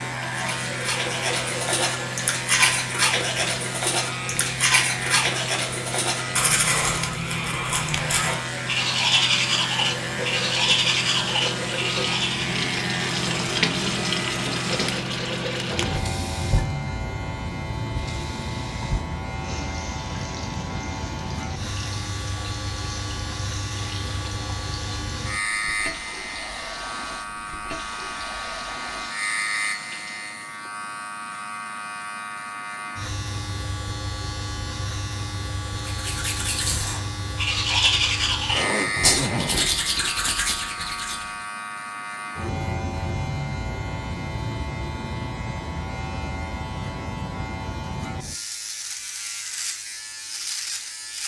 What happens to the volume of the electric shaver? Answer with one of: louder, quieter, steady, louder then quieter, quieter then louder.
steady.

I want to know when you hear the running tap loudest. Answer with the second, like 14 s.
14 s.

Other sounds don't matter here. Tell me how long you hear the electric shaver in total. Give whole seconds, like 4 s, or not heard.
51 s.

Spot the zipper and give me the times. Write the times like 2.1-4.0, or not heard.
38.5-39.8.